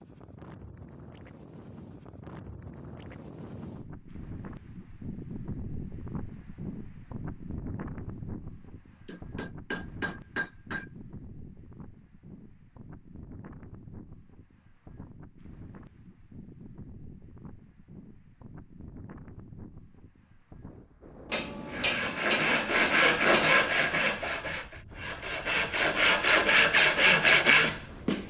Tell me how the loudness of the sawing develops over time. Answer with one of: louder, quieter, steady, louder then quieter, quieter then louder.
quieter then louder.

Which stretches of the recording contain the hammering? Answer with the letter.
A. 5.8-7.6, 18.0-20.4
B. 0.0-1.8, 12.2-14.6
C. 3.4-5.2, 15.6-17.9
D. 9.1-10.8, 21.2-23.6
D.